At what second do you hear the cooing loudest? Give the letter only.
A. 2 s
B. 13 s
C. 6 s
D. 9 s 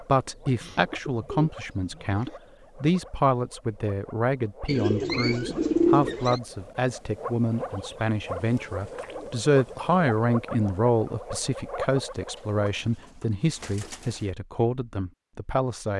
C.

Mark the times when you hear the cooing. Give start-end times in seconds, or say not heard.
0.6-2.4, 4.7-6.4, 8.3-9.9, 12.3-14.3.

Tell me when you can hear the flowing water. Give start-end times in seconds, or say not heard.
not heard.